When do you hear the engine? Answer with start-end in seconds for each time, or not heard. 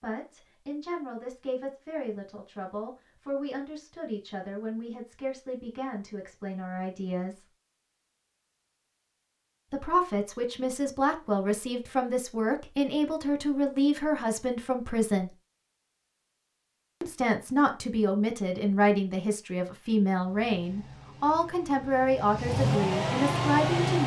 20.1-24.0.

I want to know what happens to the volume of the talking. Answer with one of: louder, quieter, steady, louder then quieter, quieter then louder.
louder.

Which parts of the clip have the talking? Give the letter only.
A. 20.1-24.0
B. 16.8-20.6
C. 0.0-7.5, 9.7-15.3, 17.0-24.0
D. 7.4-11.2
C.